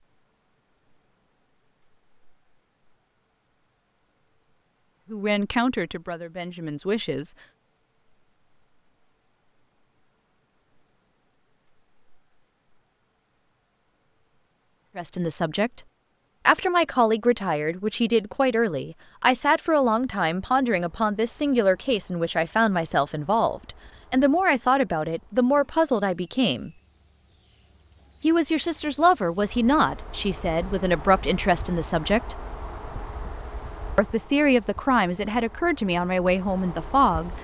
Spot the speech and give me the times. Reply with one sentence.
You can hear the speech from 5.1 to 7.3 s, from 14.9 to 15.8 s, from 16.4 to 26.7 s, from 28.2 to 32.4 s and from 34.0 to 37.4 s.